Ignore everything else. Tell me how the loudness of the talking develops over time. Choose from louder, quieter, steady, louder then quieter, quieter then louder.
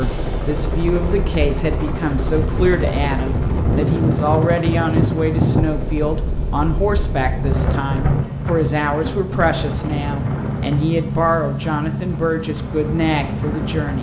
steady.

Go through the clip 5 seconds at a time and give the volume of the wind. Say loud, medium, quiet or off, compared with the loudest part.
loud, loud, medium.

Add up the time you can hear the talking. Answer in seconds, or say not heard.
14 s.